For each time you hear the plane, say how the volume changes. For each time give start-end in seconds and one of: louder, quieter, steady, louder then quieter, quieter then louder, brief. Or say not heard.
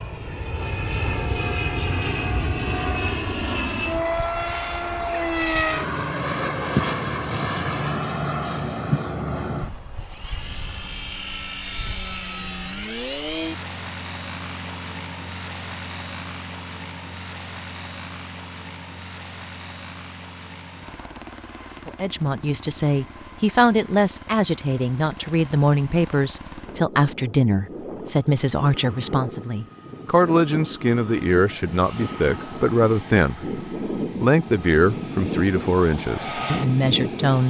0.0-37.4 quieter then louder.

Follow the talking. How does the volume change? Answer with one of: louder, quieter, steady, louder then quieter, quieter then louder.
steady.